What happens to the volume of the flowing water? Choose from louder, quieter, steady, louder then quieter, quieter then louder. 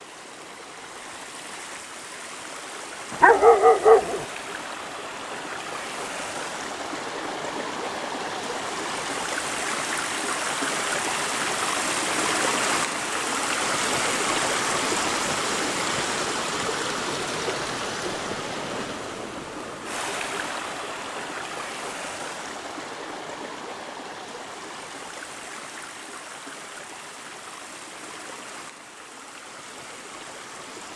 louder then quieter.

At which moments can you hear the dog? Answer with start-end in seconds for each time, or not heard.
3.2-4.2.